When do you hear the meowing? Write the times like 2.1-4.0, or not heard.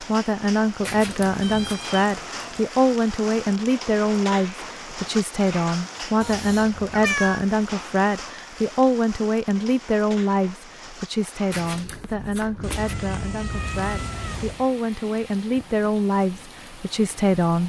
1.4-2.6, 6.2-7.5, 12.6-14.7.